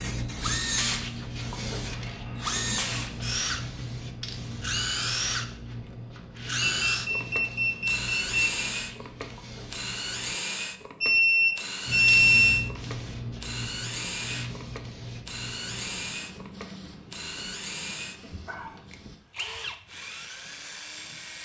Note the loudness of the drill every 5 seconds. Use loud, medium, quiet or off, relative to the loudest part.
loud, loud, medium, medium, medium.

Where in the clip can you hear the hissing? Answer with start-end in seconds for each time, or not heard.
0.0-10.3, 11.8-19.2.